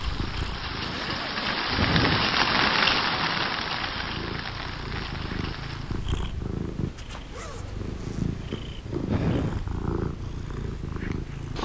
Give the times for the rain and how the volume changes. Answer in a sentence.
The rain can be heard from 0.0 to 6.2 s, getting louder then quieter.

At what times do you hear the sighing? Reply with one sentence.
The sighing can be heard from 1.8 to 2.4 s and from 9.1 to 9.7 s.